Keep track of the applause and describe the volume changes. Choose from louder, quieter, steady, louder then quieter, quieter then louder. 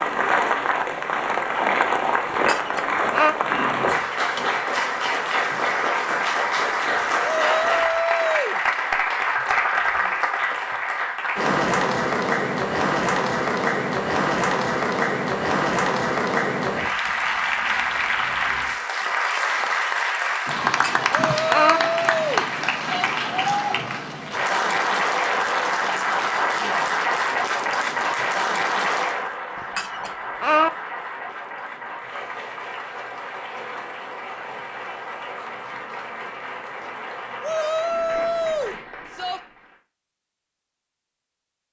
quieter.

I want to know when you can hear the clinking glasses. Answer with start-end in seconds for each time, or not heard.
2.3-3.4, 20.6-21.8, 29.6-30.7.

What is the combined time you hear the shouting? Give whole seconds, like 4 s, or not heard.
5 s.